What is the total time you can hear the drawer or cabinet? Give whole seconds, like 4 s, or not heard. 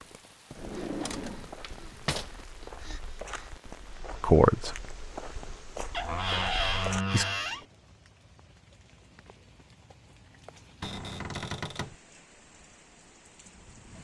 5 s.